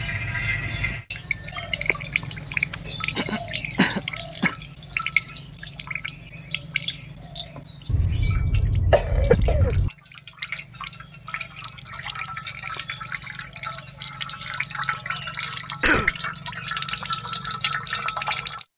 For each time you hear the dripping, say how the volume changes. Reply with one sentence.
The dripping can be heard from 0.0 to 18.6 s, getting quieter then louder.